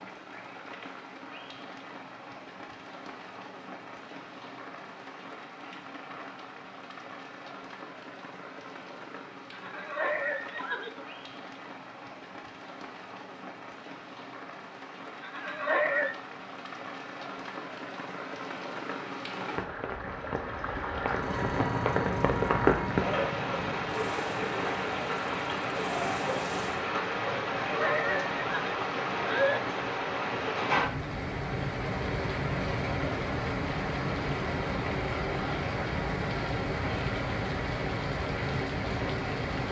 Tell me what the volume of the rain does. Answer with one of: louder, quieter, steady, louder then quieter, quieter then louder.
louder.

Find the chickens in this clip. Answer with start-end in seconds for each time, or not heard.
not heard.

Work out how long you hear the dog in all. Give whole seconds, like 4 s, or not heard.
not heard.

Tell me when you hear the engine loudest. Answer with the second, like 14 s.
22 s.